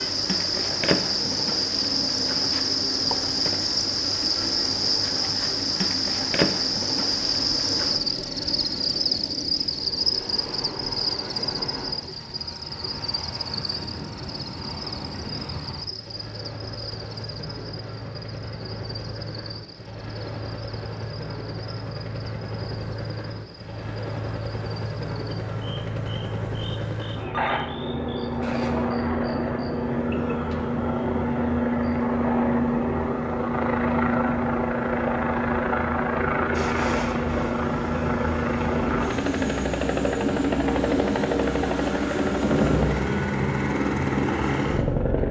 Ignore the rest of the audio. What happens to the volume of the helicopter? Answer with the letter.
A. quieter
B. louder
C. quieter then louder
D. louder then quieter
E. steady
B.